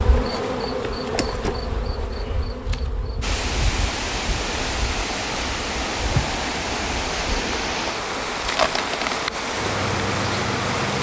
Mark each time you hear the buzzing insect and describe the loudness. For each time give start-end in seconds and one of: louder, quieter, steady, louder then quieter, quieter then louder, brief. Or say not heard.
0.0-10.9 quieter then louder.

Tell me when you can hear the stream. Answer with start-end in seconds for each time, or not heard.
3.2-10.9.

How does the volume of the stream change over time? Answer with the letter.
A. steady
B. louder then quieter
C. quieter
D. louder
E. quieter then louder
A.